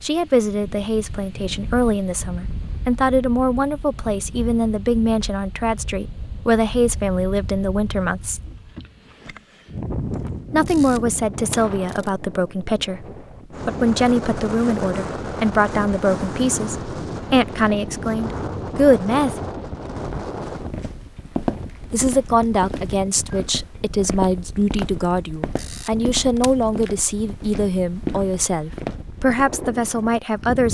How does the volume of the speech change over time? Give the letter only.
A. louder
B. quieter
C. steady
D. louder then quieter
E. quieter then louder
C.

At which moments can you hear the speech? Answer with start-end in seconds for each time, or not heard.
0.0-8.5, 10.5-19.4, 21.9-30.6.